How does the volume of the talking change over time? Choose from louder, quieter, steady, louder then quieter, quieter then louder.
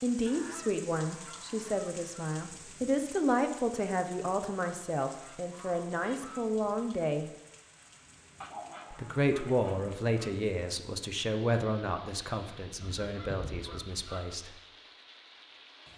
quieter.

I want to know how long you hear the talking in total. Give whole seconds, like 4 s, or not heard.
13 s.